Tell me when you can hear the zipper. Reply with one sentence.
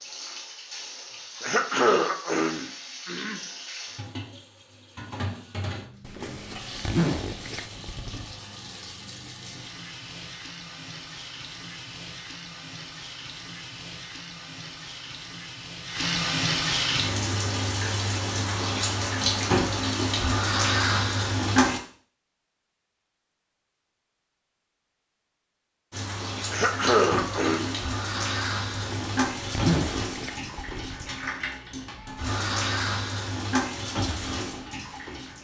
The zipper can be heard from 6.0 to 8.2 s and from 28.7 to 30.9 s.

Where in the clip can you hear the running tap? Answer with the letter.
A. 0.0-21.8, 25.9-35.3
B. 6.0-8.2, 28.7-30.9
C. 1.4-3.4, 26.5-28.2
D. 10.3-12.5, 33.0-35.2
A.